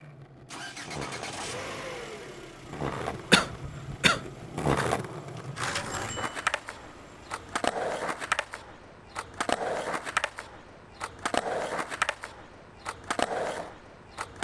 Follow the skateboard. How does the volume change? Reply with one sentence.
The volume of the skateboard goes up.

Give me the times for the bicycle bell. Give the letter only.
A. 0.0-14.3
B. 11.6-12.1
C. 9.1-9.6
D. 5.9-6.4
D.